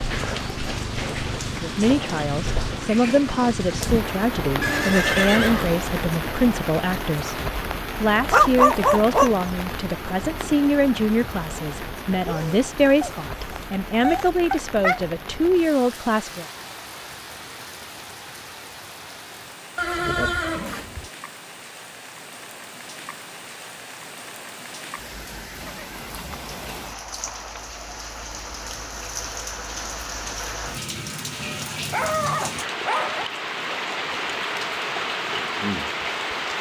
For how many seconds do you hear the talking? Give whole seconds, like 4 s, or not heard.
14 s.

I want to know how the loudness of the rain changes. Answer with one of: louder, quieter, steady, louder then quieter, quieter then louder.
quieter then louder.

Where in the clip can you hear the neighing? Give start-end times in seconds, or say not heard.
4.6-5.8, 19.8-21.1, 25.6-27.6.